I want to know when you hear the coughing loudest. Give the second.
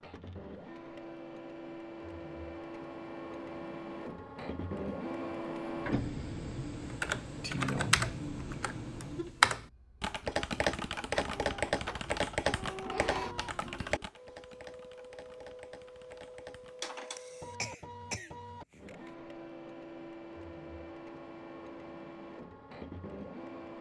18 s.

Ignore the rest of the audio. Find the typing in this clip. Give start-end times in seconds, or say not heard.
6.8-16.9.